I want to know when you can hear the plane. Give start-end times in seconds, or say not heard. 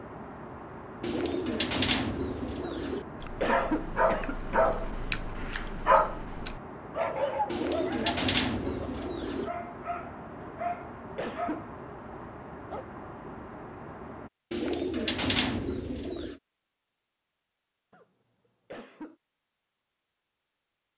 0.0-14.3.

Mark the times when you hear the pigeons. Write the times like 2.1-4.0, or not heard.
1.0-3.0, 7.5-9.5, 14.5-16.4.